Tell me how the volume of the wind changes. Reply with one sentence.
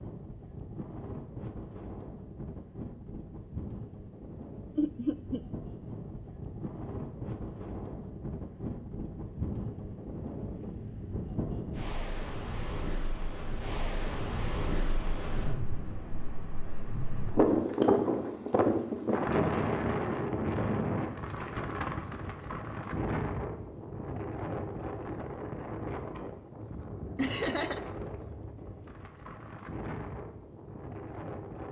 The loudness of the wind goes up, then down.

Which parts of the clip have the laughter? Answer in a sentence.
The laughter can be heard from 4.8 to 5.4 s and from 27.1 to 27.8 s.